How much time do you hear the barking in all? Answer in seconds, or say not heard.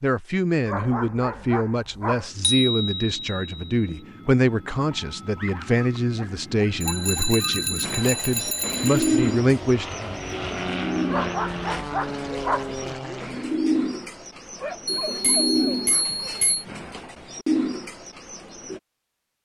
8 s.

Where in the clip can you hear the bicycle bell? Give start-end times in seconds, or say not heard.
2.4-4.0, 6.8-9.4, 15.1-16.6.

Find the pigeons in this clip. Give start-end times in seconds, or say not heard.
7.8-18.8.